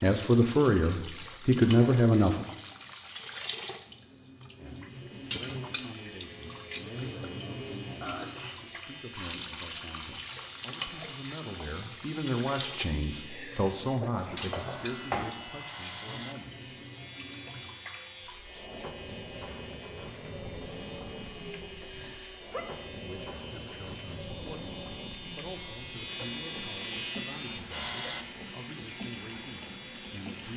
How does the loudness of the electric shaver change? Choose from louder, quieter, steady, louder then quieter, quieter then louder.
louder.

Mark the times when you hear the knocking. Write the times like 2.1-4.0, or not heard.
14.3-15.2.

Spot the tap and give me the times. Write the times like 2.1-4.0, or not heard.
0.0-30.5.